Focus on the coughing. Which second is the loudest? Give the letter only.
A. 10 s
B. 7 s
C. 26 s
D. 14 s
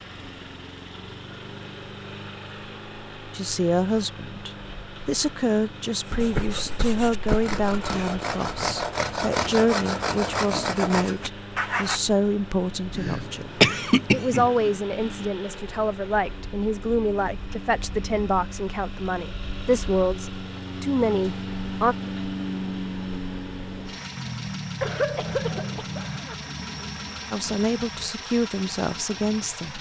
D.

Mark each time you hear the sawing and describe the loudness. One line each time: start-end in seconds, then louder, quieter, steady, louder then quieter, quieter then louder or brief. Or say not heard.
6.0-12.0 louder.